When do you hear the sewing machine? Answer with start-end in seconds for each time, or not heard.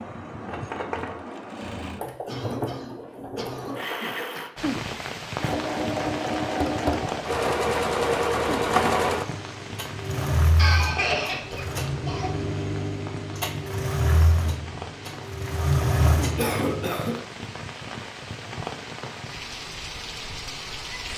0.0-16.9.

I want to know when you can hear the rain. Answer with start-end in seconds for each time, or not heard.
4.5-21.1.